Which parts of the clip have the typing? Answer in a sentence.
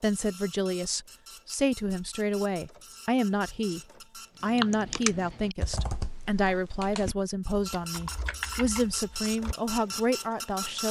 The typing can be heard from 4.5 to 10.0 s.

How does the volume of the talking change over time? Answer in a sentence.
The volume of the talking stays about the same.